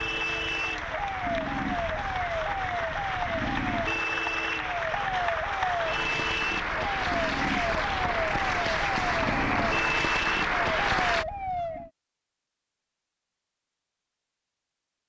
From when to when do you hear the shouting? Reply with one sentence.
You can't hear the shouting here.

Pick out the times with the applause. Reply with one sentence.
You can hear the applause from 0.0 to 11.2 s.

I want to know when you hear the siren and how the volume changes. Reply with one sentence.
The siren can be heard from 0.0 to 11.9 s, at a steady volume.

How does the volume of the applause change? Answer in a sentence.
The loudness of the applause goes up.